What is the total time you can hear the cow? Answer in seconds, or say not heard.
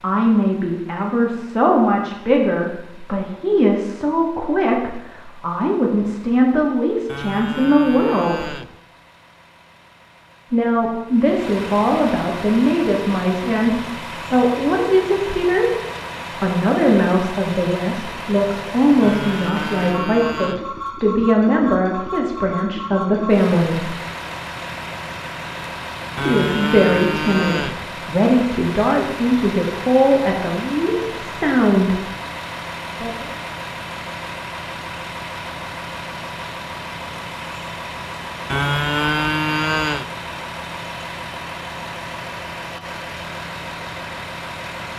7 s.